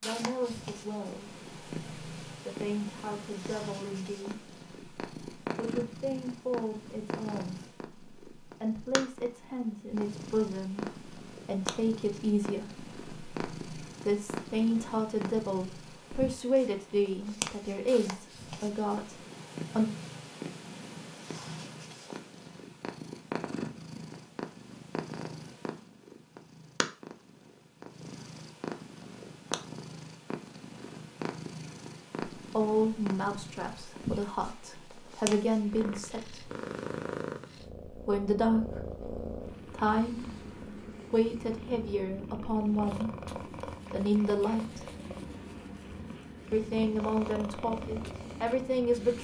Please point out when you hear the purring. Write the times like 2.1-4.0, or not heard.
0.0-49.2.